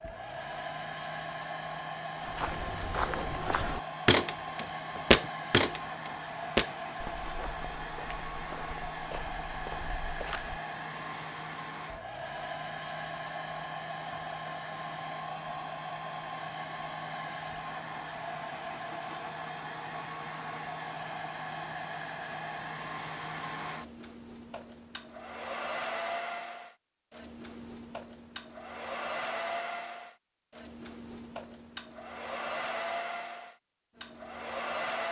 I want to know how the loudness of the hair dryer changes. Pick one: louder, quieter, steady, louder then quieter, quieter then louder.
steady.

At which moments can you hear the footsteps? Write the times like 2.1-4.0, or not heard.
2.2-10.6.